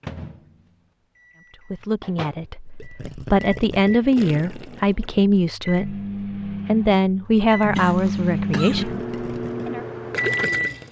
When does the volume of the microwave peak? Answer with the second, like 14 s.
8 s.